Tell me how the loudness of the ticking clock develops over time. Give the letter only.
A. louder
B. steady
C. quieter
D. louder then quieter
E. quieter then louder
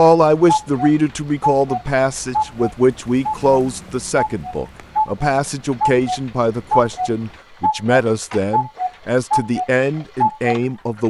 B.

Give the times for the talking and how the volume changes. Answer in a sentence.
You can hear the talking from 0.0 to 11.0 s, at a steady volume.